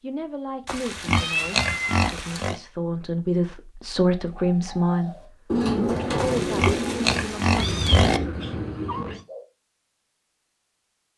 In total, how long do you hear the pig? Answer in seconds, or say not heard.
4 s.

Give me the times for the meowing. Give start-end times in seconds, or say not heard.
1.1-2.0, 7.5-9.2.